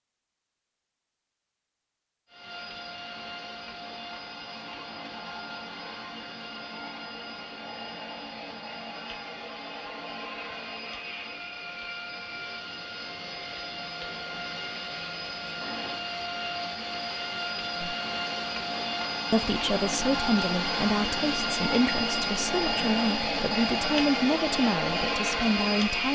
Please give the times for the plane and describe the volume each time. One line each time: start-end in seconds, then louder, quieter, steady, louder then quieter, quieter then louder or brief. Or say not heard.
2.2-26.0 louder.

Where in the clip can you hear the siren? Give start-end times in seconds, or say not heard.
not heard.